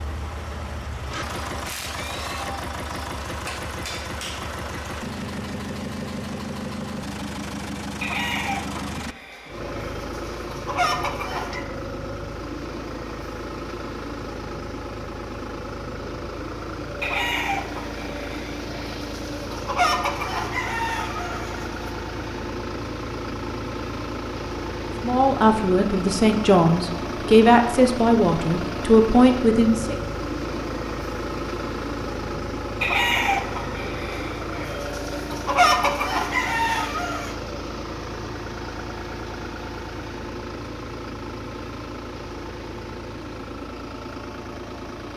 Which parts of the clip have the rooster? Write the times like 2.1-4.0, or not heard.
8.0-11.7, 17.0-21.9, 32.8-37.4.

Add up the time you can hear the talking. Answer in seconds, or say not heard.
5 s.